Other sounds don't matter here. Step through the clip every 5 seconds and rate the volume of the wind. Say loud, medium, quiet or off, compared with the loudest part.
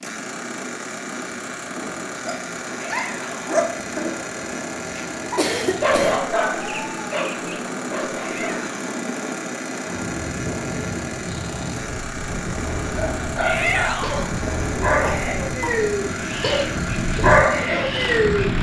medium, medium, loud, loud.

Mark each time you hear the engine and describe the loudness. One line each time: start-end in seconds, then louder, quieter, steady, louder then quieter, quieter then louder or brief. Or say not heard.
0.0-18.5 steady.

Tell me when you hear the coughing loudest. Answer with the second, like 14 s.
6 s.